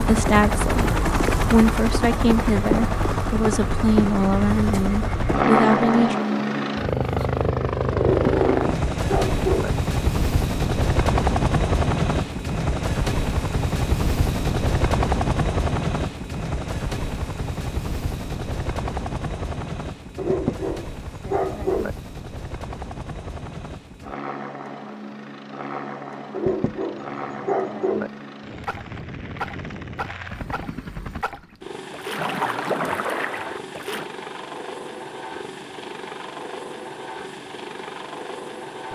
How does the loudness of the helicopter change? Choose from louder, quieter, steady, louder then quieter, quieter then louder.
quieter.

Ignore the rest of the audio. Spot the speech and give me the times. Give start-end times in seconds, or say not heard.
0.0-6.2.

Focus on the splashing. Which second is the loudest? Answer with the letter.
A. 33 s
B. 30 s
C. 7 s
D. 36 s
A.